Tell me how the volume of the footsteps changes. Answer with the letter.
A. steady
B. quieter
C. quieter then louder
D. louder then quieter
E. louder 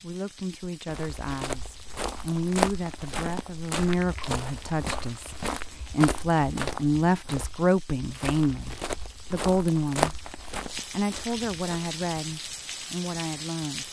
C.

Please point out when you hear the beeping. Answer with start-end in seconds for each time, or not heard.
not heard.